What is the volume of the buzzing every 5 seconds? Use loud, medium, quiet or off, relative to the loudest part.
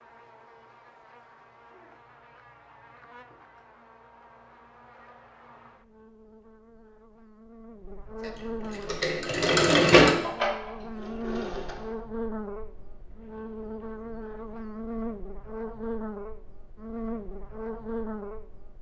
quiet, medium, loud, loud.